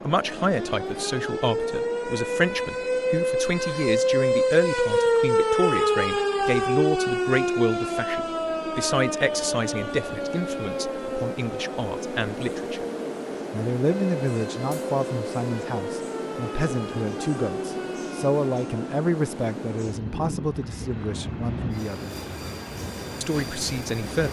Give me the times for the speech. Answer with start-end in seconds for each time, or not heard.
0.0-12.8, 13.5-22.1, 23.2-24.2.